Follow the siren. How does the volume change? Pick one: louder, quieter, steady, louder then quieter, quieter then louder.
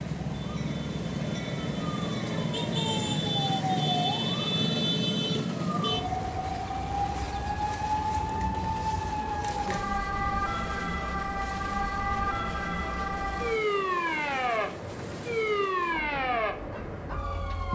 steady.